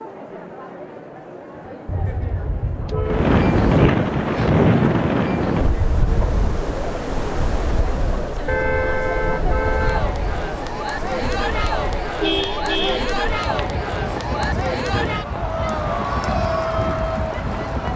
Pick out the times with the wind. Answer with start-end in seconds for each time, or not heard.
3.0-17.9.